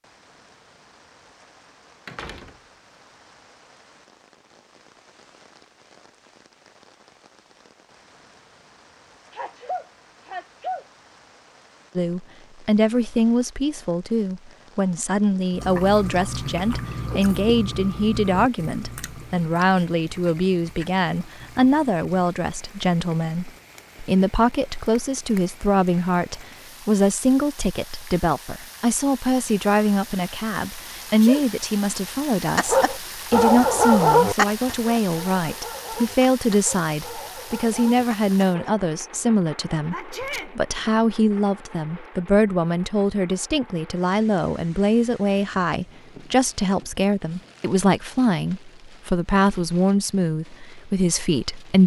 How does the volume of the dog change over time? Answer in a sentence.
The loudness of the dog goes down.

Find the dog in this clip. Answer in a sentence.
You can hear the dog from 32.5 to 38.8 s.